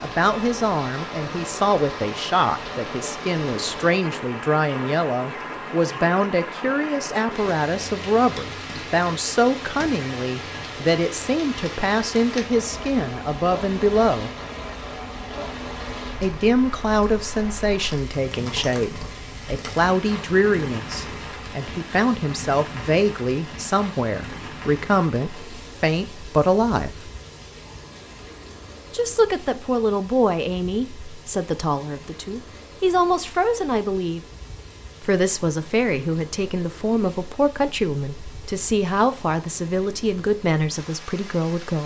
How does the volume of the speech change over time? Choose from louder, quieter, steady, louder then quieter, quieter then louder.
steady.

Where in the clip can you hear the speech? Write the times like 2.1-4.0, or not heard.
0.0-14.3, 16.2-27.1, 28.9-34.2, 35.0-41.8.